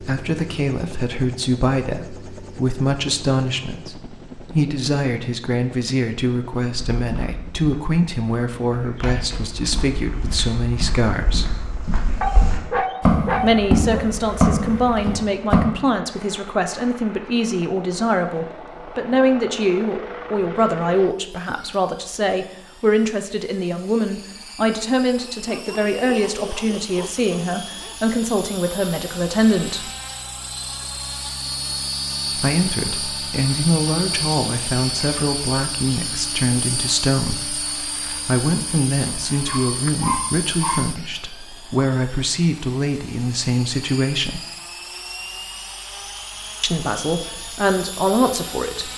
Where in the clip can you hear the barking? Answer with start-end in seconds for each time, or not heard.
12.2-14.2, 25.4-28.0, 39.5-40.9.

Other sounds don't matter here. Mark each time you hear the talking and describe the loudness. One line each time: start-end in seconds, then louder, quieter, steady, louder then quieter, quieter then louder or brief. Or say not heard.
0.0-11.5 steady
13.4-29.9 steady
32.4-44.5 steady
46.6-48.9 brief.